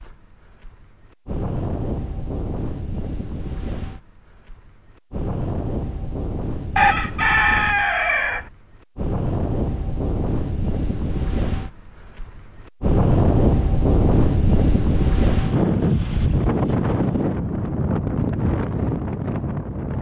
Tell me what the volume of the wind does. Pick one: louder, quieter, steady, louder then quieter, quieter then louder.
louder.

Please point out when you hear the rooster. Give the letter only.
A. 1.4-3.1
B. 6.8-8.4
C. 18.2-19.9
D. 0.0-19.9
B.